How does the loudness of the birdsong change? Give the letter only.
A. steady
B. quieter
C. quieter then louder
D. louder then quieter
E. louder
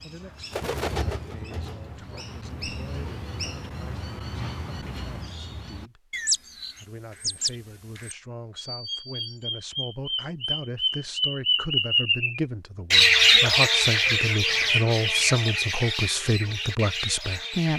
D.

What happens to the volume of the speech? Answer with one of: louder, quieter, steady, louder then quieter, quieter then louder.
louder.